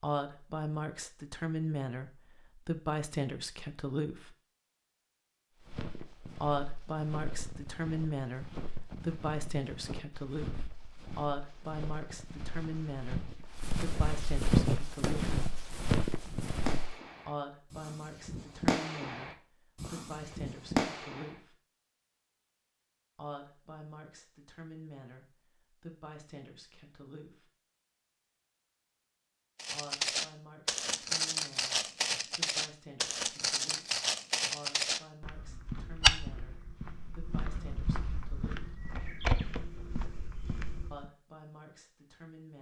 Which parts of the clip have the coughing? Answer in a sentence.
You can't hear the coughing here.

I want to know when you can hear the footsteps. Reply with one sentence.
You can hear the footsteps from 5.6 to 16.9 s and from 29.6 to 41.1 s.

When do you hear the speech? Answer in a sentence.
You can hear the speech from 0.0 to 4.3 s, from 6.4 to 15.3 s, from 17.2 to 21.6 s, from 23.1 to 27.5 s, from 29.7 to 38.7 s and from 40.9 to 42.5 s.